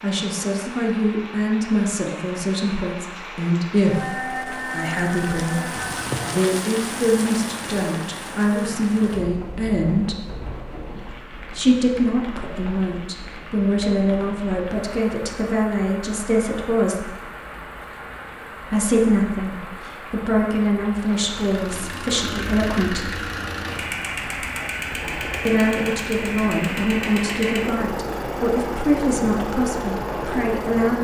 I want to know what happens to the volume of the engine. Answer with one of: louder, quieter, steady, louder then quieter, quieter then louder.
steady.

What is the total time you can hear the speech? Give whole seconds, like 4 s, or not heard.
26 s.